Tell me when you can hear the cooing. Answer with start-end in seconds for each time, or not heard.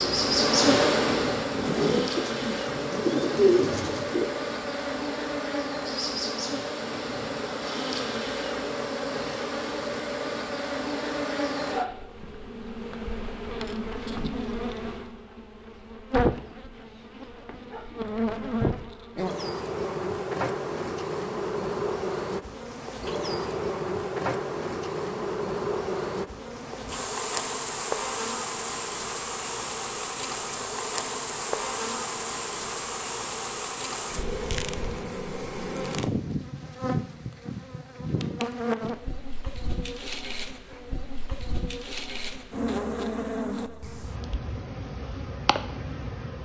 0.0-4.3.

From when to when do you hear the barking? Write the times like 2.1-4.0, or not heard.
not heard.